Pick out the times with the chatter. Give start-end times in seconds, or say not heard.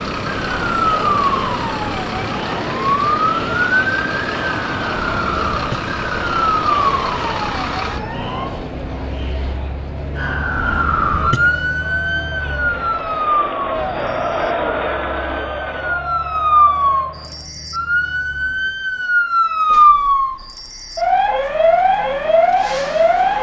0.1-17.5.